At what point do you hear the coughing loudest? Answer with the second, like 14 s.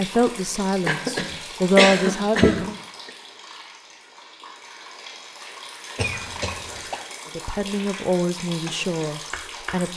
2 s.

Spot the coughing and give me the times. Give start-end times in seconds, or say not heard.
0.8-2.7, 6.0-7.0.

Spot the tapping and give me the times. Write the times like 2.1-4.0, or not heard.
8.7-9.8.